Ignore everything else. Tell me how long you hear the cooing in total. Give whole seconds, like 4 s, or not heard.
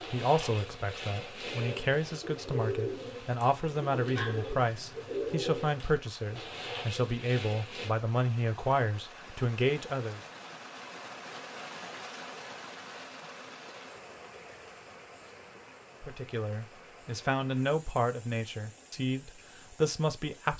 8 s.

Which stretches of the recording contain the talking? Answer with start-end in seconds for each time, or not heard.
0.1-10.2, 16.0-20.5.